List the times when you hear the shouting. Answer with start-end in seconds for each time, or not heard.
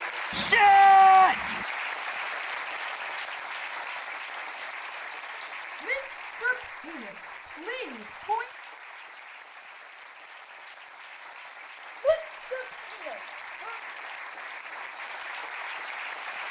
0.3-1.6, 5.8-8.5, 12.0-13.8.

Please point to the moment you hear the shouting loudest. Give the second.
1 s.